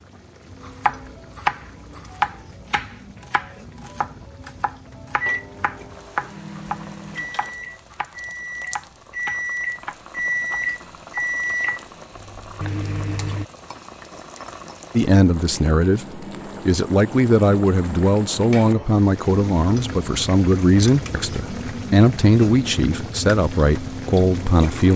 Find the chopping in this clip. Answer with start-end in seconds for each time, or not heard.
0.6-11.8.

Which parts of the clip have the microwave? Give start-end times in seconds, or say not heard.
5.2-13.4.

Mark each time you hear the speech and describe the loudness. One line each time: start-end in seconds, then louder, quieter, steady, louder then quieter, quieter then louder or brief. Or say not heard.
14.9-24.9 steady.